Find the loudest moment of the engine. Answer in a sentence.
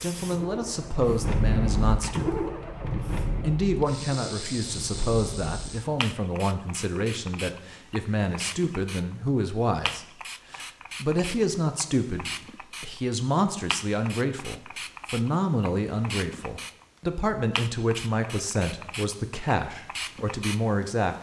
The loudest moment of the engine is at 2 seconds.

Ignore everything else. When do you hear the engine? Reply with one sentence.
The engine can be heard from 0.2 to 6.0 s.